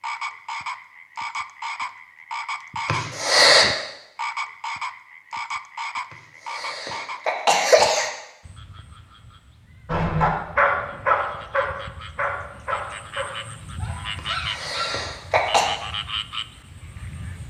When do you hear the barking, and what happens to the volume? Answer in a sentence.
The barking can be heard from 9.9 to 15.1 s, getting quieter.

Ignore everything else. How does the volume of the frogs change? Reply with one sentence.
The volume of the frogs goes down, then up.